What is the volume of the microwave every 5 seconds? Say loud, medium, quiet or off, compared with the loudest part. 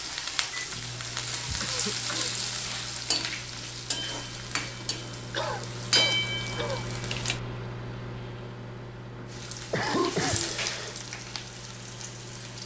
medium, loud, medium.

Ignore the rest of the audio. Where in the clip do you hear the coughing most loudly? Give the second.
10 s.